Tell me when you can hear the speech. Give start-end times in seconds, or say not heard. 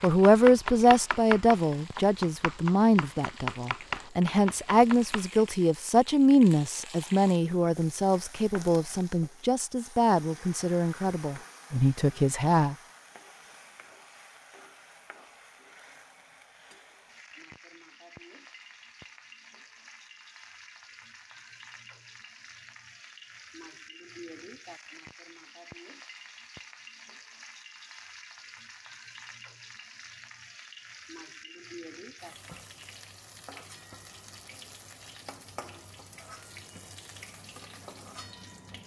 0.0-12.8.